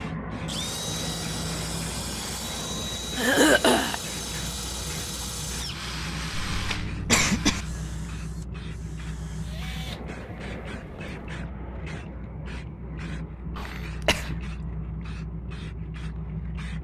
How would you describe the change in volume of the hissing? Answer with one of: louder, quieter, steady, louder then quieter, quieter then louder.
steady.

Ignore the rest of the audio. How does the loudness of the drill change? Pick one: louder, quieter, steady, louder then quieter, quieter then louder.
quieter.